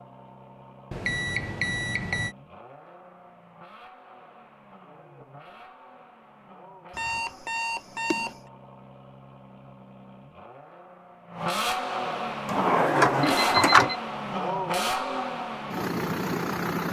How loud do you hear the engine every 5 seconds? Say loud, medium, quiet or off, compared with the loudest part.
quiet, quiet, loud, loud.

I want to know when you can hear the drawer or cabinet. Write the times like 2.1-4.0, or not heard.
12.4-13.9.